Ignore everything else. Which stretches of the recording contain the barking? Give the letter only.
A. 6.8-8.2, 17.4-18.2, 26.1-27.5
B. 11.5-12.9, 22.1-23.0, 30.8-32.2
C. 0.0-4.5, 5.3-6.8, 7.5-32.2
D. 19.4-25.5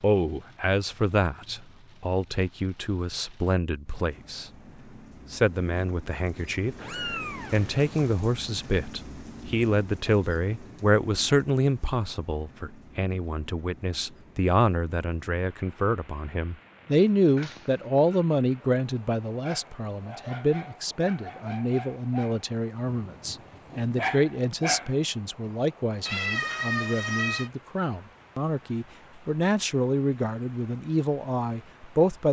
D.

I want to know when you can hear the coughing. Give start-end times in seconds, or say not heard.
not heard.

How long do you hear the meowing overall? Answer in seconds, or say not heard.
4 s.